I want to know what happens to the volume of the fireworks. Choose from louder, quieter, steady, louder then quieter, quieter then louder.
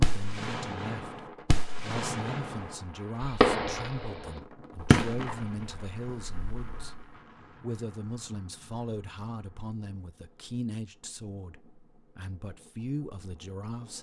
louder then quieter.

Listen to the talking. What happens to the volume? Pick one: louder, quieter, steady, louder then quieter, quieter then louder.
steady.